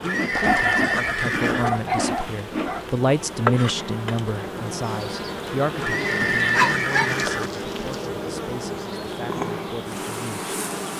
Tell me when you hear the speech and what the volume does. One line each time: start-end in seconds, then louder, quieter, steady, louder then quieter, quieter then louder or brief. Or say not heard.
0.0-10.5 louder then quieter.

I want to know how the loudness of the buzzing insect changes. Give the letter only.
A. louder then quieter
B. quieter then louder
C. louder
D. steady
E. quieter
D.